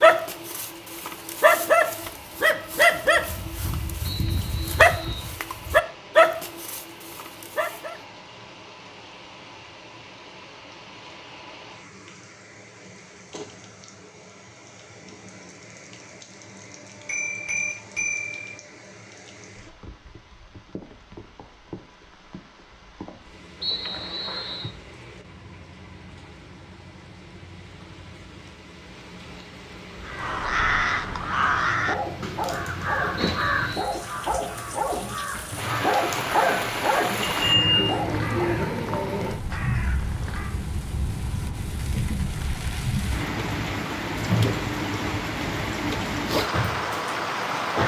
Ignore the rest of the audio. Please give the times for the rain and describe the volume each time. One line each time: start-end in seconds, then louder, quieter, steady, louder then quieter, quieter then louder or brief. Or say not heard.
0.0-47.8 louder.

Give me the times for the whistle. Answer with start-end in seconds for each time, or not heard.
4.0-5.3, 23.6-24.8, 33.1-33.9.